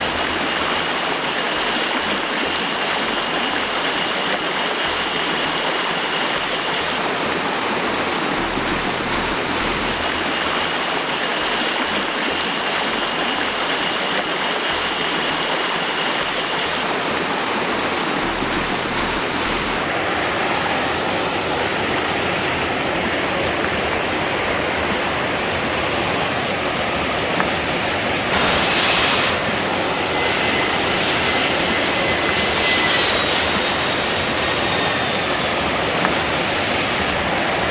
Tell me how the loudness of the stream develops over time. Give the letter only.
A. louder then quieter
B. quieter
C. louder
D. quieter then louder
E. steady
E.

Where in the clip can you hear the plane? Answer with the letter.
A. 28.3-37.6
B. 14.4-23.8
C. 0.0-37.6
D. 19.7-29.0
A.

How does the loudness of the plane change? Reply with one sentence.
The loudness of the plane goes down.